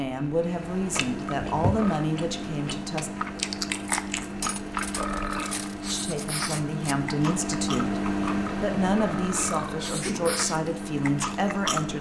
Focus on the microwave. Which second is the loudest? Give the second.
8 s.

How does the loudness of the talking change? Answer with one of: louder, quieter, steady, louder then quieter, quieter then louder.
steady.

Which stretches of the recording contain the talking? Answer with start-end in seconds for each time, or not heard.
0.0-3.1, 5.8-11.9.